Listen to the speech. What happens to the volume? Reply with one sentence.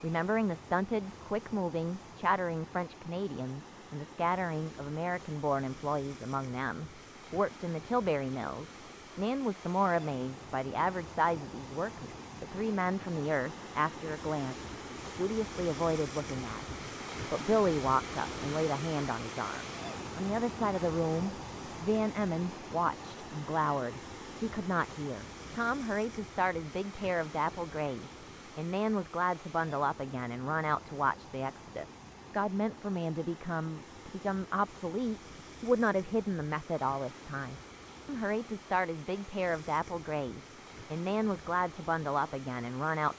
The volume of the speech stays about the same.